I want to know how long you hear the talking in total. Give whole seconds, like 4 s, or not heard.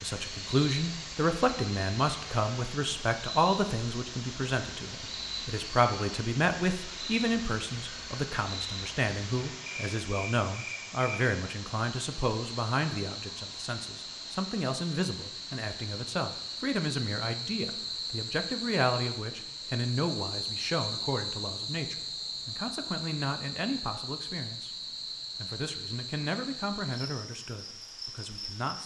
28 s.